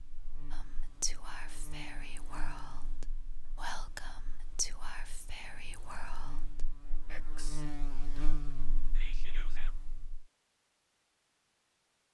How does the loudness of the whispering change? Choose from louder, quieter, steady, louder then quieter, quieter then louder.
quieter.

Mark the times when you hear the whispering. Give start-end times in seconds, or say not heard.
0.5-9.8.